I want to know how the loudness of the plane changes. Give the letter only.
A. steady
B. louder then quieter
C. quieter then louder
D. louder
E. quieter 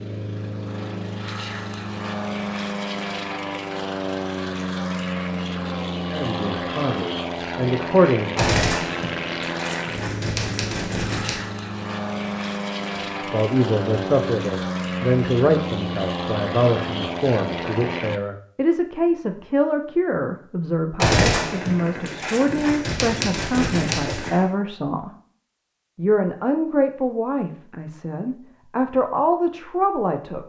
A.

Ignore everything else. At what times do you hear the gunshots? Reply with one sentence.
The gunshots can be heard from 8.3 to 11.5 s and from 21.0 to 24.4 s.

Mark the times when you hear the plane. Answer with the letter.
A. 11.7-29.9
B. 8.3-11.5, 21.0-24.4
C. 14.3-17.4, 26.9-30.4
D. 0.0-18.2
D.